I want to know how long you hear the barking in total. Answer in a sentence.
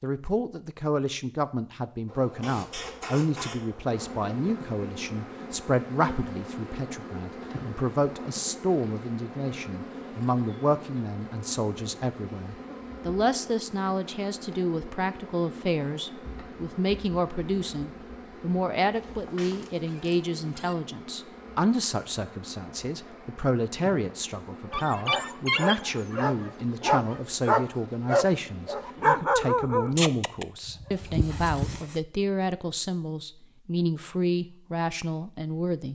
You can hear the barking for 7 seconds altogether.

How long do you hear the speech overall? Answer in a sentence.
You can hear the speech for 36 seconds altogether.